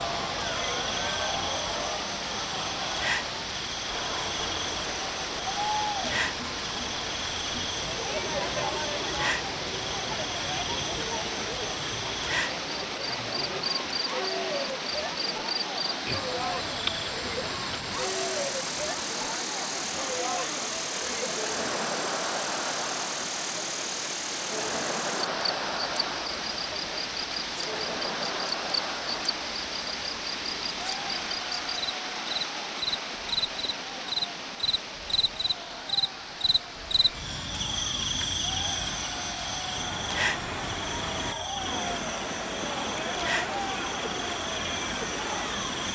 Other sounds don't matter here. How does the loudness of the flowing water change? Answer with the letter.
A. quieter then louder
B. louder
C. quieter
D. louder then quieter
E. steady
E.